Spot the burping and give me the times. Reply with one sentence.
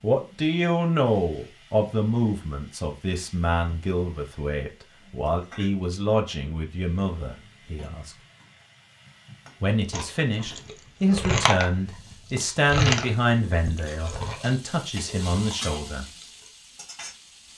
The burping can't be heard in this clip.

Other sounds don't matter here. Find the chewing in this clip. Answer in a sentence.
You can hear the chewing from 9.9 to 16.5 s.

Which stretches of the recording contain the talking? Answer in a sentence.
You can hear the talking from 0.0 to 8.2 s and from 9.6 to 16.1 s.